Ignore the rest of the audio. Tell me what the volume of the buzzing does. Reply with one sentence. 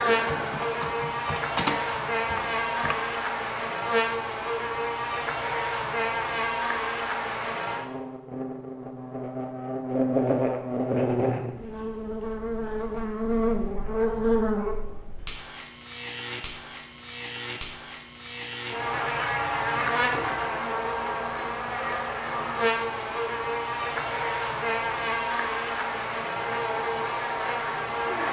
The volume of the buzzing stays about the same.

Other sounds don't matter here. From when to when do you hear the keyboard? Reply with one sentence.
The keyboard can be heard from 0.0 to 3.0 s.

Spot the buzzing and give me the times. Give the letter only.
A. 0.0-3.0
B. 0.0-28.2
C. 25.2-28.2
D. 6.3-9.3
B.